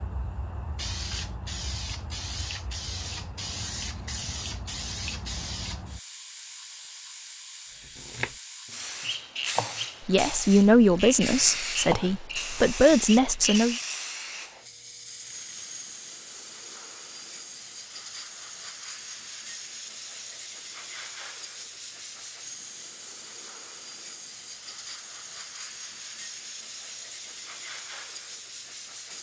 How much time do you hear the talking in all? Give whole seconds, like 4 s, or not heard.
4 s.